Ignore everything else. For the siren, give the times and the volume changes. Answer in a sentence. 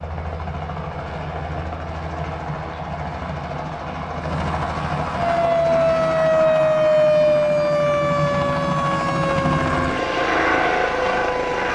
You can hear the siren from 5.2 to 11.7 s, getting quieter.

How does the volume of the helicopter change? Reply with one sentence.
The volume of the helicopter goes up.